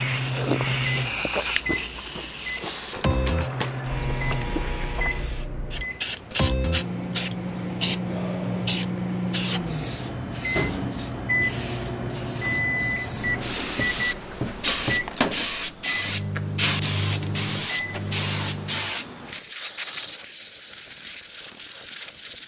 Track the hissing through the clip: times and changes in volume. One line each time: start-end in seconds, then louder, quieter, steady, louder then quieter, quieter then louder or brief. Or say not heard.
0.0-22.4 steady.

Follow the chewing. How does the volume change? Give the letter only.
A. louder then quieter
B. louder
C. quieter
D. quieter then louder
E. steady
C.